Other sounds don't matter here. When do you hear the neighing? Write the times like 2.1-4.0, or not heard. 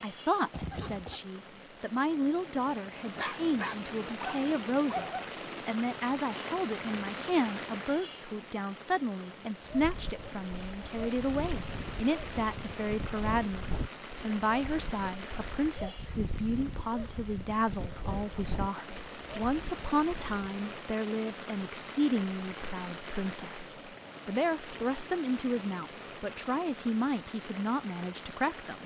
0.5-1.2.